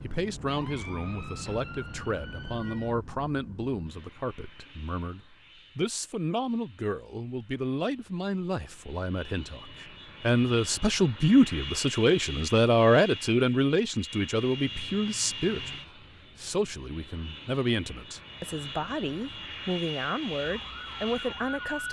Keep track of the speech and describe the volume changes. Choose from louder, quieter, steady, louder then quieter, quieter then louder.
louder then quieter.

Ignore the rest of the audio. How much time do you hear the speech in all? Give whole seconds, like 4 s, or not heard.
22 s.